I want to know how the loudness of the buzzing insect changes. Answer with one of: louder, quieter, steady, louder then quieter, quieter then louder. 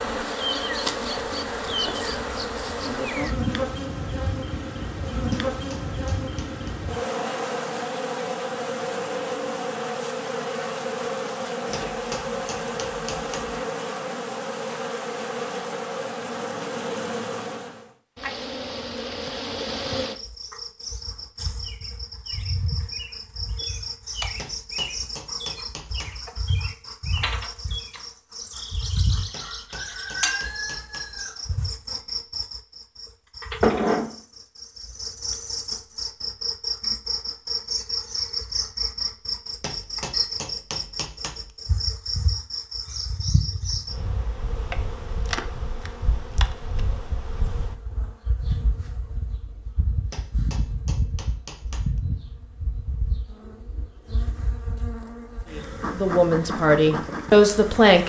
quieter.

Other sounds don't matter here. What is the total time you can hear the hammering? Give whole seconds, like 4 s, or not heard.
11 s.